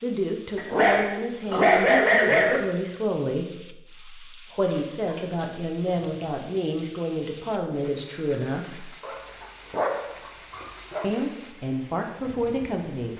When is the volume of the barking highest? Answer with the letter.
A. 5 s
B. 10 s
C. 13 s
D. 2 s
D.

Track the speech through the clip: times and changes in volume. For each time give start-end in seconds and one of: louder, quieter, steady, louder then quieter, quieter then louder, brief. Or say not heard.
0.0-8.8 steady
11.0-13.1 brief.